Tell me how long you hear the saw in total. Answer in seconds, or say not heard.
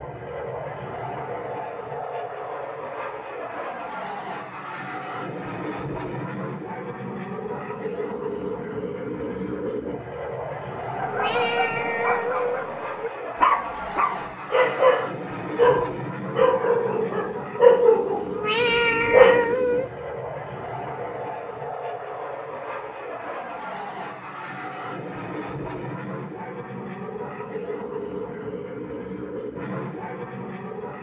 not heard.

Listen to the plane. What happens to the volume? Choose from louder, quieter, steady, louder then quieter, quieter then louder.
steady.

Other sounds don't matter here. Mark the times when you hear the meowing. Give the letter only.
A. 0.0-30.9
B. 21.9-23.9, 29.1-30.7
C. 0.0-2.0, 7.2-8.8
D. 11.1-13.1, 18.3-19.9
D.